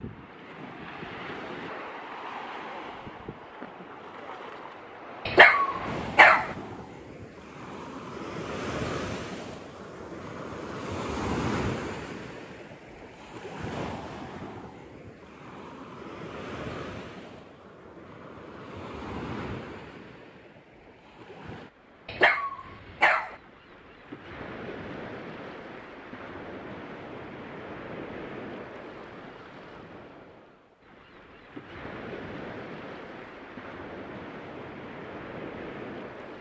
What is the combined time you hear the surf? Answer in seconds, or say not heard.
36 s.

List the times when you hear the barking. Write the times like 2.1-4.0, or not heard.
5.2-6.5, 22.1-23.4.